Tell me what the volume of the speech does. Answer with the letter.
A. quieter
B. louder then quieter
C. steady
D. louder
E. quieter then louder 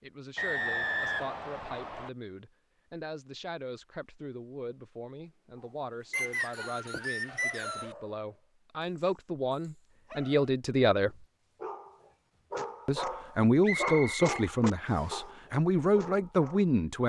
D.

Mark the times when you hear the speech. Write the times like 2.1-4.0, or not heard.
0.0-11.2, 12.8-17.0.